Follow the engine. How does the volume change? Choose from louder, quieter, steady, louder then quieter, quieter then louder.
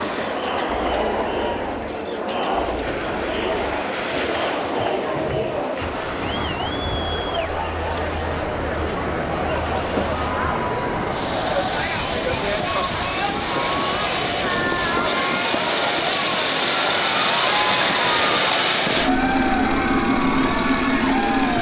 louder.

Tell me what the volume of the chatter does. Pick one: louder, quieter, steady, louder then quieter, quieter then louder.
steady.